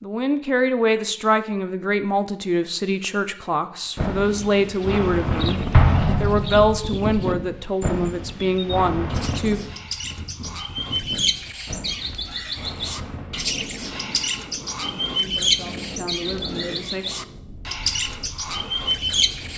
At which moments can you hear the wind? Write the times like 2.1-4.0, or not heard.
4.0-19.5.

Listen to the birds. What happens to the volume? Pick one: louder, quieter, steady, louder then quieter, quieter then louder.
louder.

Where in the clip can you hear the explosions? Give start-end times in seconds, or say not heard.
5.7-7.0.